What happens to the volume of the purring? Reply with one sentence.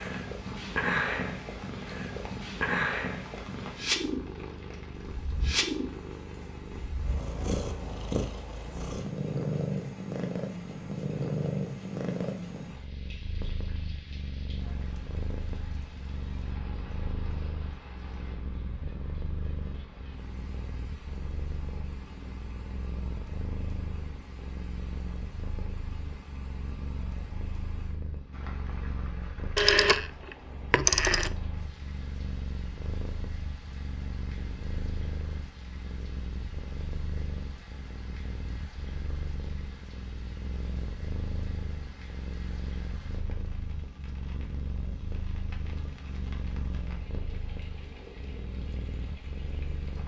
The volume of the purring goes down.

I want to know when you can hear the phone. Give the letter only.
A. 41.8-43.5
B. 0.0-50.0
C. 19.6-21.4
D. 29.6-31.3
D.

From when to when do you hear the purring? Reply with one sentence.
The purring can be heard from 0.0 to 50.0 s.